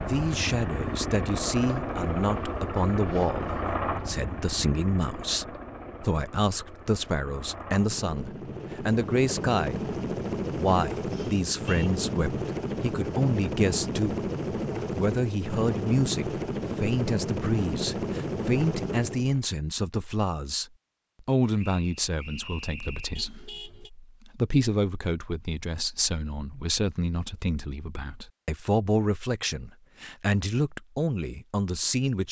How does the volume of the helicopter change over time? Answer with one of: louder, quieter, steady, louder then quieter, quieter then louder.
quieter then louder.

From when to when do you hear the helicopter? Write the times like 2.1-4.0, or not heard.
0.0-19.4.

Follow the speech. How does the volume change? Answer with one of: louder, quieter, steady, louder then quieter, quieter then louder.
steady.